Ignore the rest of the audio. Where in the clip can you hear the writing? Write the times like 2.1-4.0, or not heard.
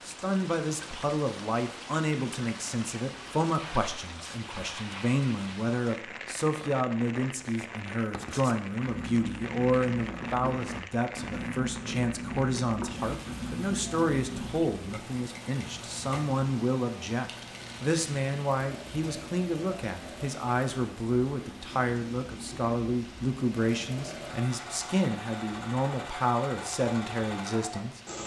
7.4-14.8.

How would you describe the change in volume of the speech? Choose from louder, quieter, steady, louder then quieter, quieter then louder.
steady.